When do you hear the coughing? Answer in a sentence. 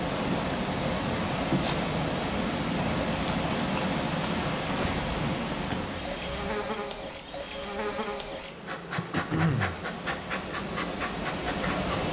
The coughing can be heard from 9.1 to 9.8 s.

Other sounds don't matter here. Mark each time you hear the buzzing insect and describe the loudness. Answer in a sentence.
The buzzing insect can be heard from 0.0 to 12.0 s, at a steady volume.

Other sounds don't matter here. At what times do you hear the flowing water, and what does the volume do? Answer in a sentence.
You can hear the flowing water from 0.0 to 12.0 s, getting quieter then louder.